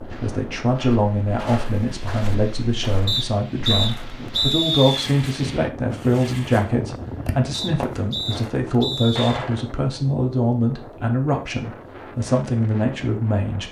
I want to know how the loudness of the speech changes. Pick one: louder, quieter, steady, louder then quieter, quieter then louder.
steady.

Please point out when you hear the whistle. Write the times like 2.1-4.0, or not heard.
3.0-5.1, 7.5-9.3.